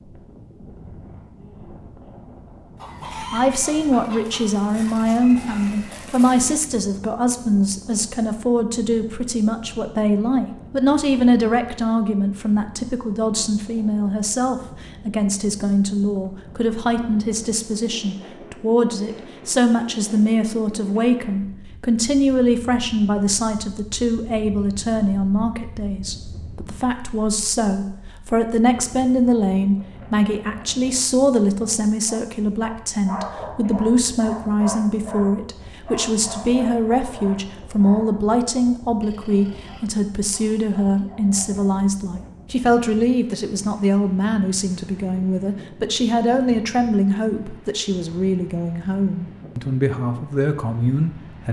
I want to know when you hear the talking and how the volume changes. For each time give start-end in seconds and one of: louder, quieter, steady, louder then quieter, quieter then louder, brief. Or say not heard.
3.0-51.4 steady.